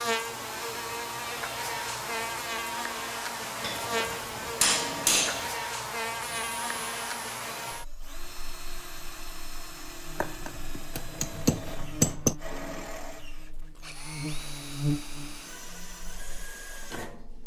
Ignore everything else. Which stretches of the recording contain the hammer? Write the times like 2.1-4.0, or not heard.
3.6-5.5, 10.2-12.3.